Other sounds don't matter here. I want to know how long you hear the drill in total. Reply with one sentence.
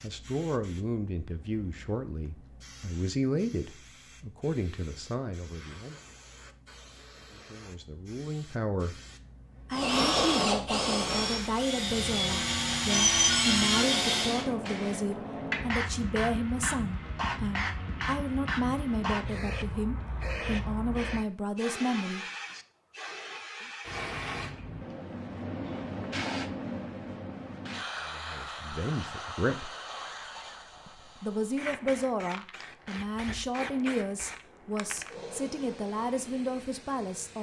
The drill can be heard for 5 seconds in total.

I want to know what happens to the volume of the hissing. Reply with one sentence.
The volume of the hissing goes up, then down.